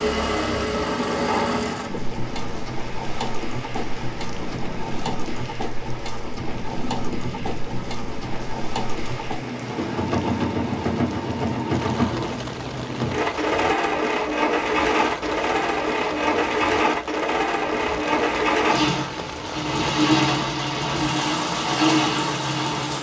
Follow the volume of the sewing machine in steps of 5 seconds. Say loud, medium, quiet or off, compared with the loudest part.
medium, medium, loud, loud, loud.